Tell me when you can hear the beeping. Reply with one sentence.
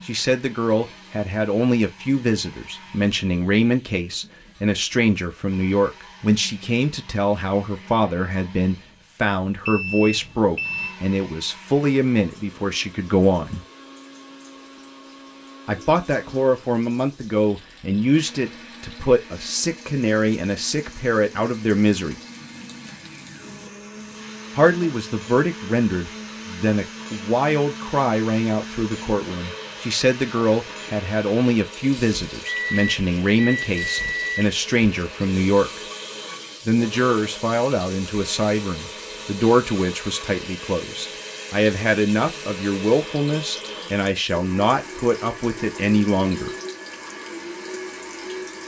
You can hear the beeping from 9.7 to 10.9 s and from 32.5 to 34.5 s.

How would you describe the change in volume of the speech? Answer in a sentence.
The volume of the speech stays about the same.